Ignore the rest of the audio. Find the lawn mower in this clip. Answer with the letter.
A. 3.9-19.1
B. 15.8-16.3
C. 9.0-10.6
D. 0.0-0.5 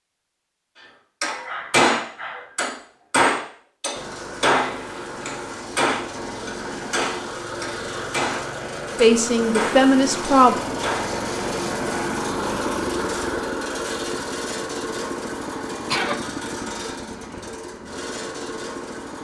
A.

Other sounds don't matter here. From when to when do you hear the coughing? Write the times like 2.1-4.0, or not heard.
15.8-16.3.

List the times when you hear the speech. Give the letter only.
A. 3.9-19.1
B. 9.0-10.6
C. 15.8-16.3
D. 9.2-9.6
B.